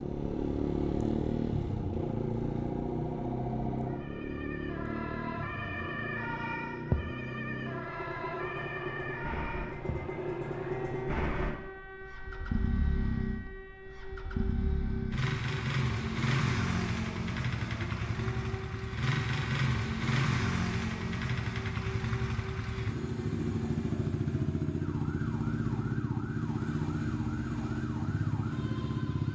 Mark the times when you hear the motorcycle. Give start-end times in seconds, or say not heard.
0.0-29.3.